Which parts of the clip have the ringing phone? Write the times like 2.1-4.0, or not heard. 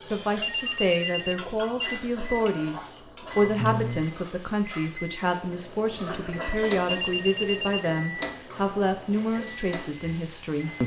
0.1-2.0, 6.5-7.8.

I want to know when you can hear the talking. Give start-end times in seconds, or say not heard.
0.0-10.8.